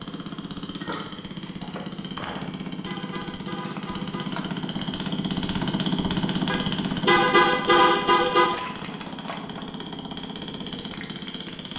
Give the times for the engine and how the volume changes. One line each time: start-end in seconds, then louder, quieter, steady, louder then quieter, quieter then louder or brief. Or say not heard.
0.0-11.7 louder then quieter.